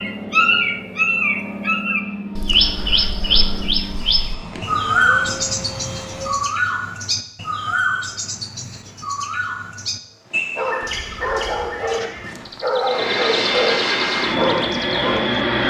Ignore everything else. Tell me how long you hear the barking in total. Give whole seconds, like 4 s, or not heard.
5 s.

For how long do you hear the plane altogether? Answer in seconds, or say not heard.
9 s.